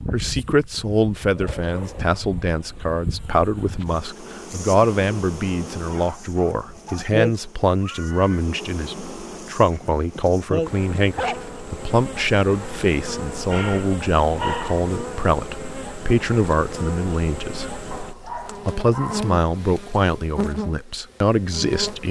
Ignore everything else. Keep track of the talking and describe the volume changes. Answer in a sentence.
The loudness of the talking stays about the same.